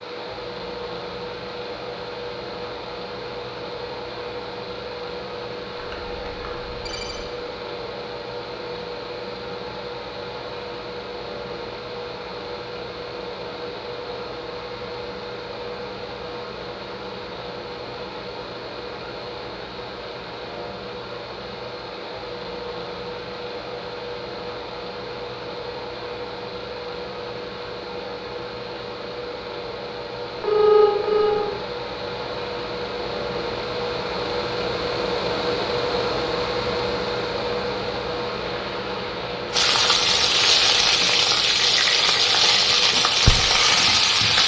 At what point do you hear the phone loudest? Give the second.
31 s.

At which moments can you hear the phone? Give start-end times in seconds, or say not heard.
5.8-7.2, 30.4-31.5.